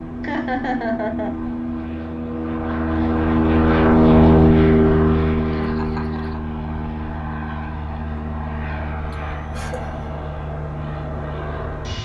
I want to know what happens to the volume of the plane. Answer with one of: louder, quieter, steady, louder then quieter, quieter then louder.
louder then quieter.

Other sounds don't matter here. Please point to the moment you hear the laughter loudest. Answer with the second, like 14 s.
1 s.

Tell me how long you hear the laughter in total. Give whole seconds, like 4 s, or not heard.
3 s.